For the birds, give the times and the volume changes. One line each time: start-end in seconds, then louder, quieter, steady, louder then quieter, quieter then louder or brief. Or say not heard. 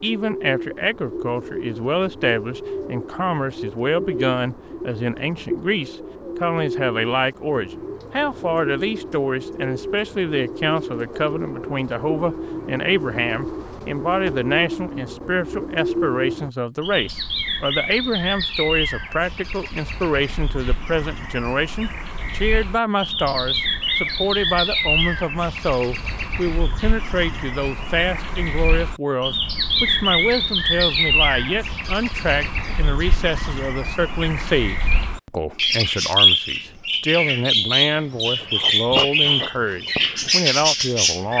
0.0-41.3 louder.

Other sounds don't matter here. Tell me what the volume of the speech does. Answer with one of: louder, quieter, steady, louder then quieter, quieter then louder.
steady.